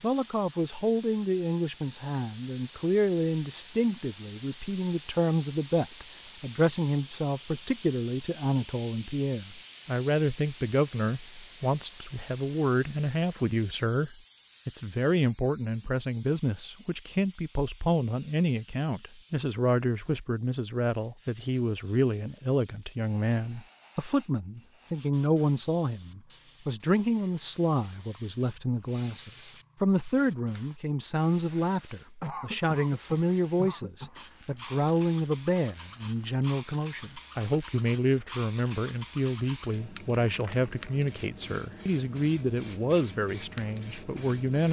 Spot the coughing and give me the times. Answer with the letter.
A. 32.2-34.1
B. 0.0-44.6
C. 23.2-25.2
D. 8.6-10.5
A.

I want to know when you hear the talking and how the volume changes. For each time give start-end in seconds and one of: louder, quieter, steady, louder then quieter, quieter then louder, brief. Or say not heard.
0.0-44.6 steady.